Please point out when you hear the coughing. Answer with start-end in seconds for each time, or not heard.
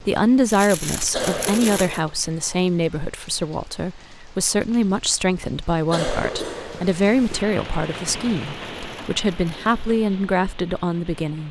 1.1-2.0, 5.9-7.5.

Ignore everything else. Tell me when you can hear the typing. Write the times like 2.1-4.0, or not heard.
not heard.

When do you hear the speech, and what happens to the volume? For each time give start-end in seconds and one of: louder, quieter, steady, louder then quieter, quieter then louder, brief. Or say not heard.
0.0-11.4 steady.